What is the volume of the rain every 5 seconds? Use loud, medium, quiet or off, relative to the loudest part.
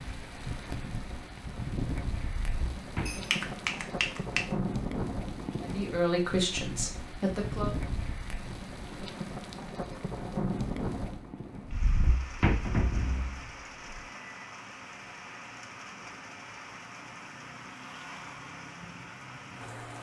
loud, loud, loud, medium.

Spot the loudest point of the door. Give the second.
13 s.